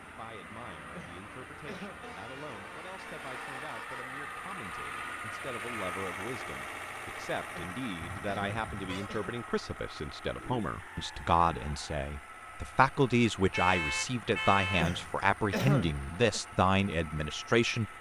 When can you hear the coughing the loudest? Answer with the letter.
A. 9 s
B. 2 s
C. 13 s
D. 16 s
D.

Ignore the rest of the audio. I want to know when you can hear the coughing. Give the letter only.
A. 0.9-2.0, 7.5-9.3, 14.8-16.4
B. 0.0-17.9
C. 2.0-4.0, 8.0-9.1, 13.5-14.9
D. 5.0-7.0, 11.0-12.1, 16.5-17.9
A.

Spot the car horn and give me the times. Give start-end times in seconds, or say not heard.
2.0-4.0, 8.0-9.1, 13.5-14.9.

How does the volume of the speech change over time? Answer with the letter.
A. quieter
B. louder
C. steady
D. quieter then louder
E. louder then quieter
B.